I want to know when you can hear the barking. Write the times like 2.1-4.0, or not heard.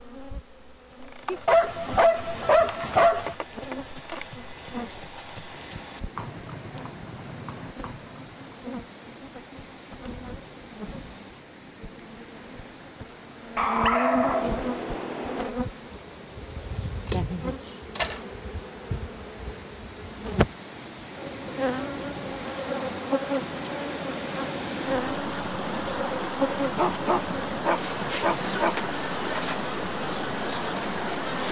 1.2-3.4, 13.6-15.5, 26.8-28.8.